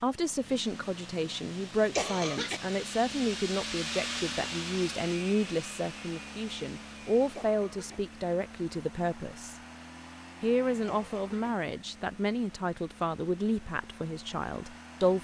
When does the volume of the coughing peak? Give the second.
2 s.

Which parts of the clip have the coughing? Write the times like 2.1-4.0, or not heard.
1.9-2.6, 7.3-8.0, 10.8-11.5.